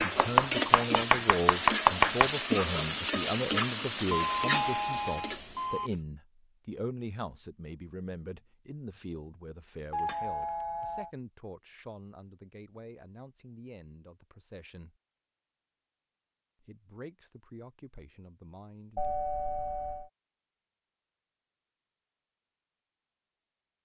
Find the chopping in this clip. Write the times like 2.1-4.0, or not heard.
0.0-2.3.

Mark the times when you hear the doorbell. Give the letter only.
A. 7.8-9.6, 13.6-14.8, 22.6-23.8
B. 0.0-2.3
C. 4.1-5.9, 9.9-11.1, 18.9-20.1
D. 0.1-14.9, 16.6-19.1
C.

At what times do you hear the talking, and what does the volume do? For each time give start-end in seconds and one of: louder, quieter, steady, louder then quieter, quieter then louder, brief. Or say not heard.
0.1-14.9 quieter
16.6-19.1 brief.